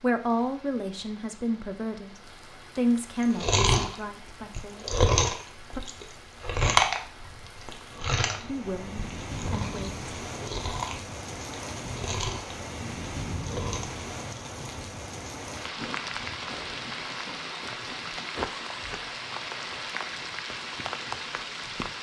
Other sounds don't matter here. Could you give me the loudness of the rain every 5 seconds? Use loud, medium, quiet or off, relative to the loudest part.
quiet, medium, loud, loud, loud.